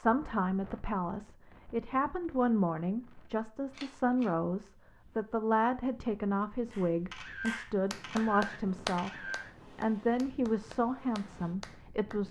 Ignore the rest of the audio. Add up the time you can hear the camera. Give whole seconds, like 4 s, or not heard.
3 s.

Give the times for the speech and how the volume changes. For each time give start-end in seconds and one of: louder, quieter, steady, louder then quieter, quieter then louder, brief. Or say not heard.
0.0-12.2 steady.